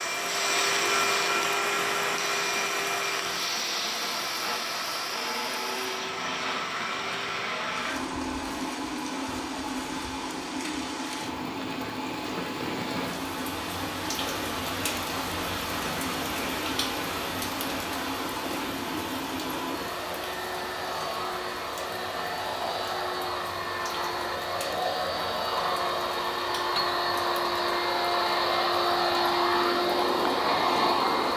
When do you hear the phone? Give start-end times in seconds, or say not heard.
not heard.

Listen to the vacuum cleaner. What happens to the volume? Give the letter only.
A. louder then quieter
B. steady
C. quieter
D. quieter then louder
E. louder
D.